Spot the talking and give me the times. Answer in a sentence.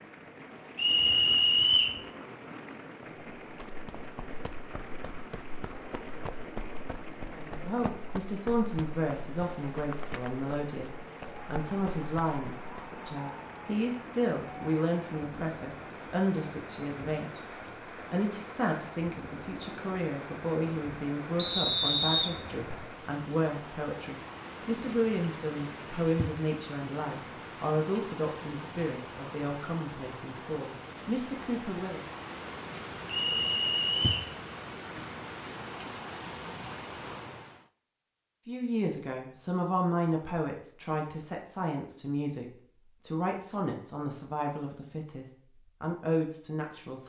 You can hear the talking from 7.3 to 17.4 s, from 18.1 to 32.0 s, from 38.5 to 42.5 s and from 43.0 to 47.0 s.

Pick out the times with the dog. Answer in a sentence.
You can't hear the dog here.